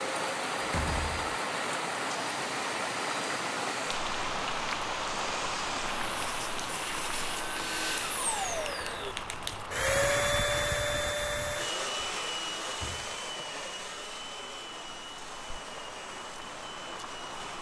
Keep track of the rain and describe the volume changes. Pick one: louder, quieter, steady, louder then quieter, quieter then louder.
quieter.